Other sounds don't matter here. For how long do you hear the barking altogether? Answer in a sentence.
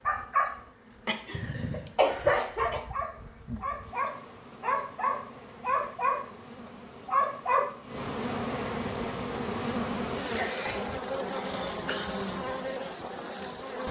The barking can be heard for 7 seconds in total.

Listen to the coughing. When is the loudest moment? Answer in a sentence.
The loudest moment of the coughing is at 2 seconds.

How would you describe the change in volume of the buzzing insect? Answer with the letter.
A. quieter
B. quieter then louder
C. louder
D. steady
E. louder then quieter
C.